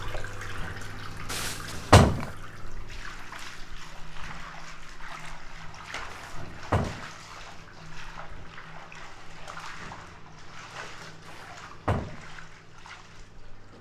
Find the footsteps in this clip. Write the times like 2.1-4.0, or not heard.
not heard.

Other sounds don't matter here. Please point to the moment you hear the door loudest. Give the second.
2 s.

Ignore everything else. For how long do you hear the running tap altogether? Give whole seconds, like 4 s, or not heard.
14 s.